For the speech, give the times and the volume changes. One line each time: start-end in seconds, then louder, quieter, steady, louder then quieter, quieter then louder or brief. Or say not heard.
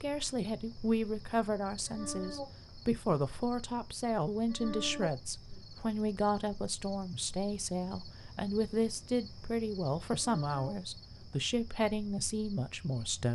0.0-13.3 steady.